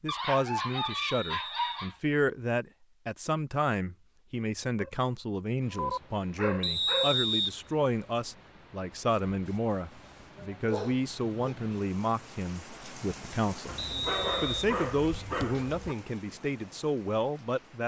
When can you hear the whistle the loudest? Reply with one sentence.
The loudest moment of the whistle is at 7 seconds.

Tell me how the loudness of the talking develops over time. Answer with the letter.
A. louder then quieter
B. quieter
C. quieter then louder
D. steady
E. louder
D.